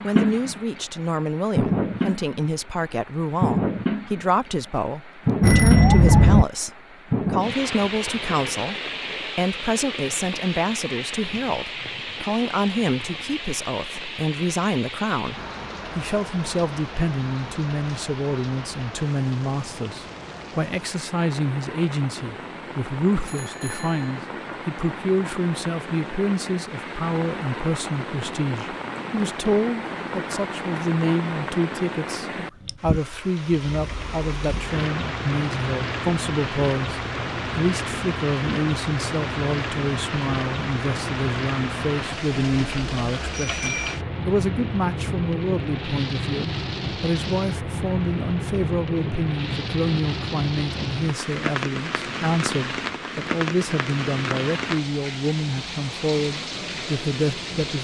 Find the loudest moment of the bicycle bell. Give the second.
6 s.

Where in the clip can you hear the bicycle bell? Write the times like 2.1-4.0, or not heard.
5.4-6.5, 23.2-24.2, 43.3-44.0.